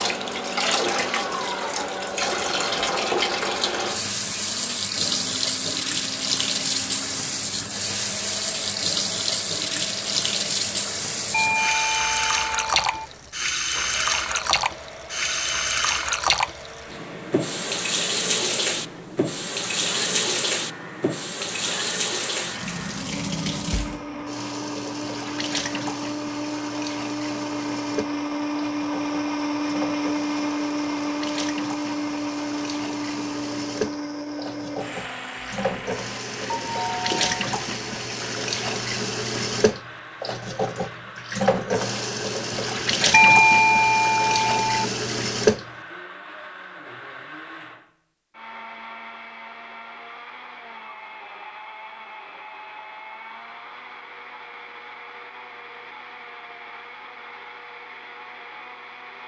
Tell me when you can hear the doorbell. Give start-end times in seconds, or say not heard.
11.3-13.1, 36.5-37.5, 43.1-44.9.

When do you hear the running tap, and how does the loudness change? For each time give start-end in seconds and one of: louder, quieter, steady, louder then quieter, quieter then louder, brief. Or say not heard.
0.0-45.7 quieter then louder.